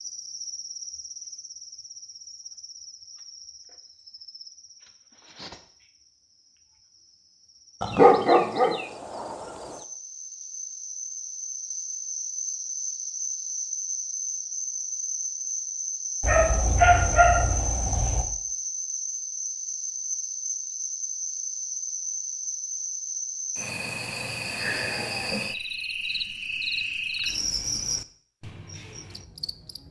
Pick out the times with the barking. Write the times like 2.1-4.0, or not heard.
7.8-8.7, 16.2-18.2.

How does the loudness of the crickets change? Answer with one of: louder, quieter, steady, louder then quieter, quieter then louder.
louder.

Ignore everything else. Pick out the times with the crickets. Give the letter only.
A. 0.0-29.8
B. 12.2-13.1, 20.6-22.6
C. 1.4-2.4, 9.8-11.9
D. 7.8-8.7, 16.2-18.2
A.